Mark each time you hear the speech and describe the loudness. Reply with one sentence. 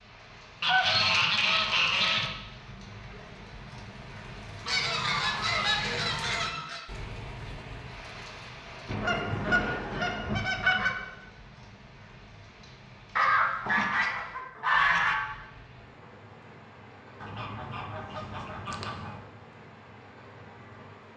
The speech can't be heard in this clip.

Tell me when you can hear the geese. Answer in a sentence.
You can hear the geese from 0.6 to 2.3 s, from 4.7 to 6.8 s, from 8.8 to 10.9 s, from 13.2 to 15.2 s and from 17.2 to 19.2 s.